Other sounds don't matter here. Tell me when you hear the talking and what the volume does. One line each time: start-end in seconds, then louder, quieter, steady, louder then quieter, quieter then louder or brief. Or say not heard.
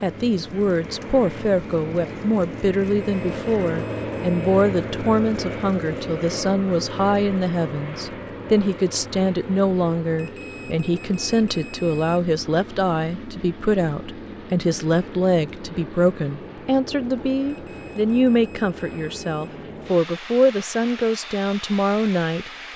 0.0-22.7 steady.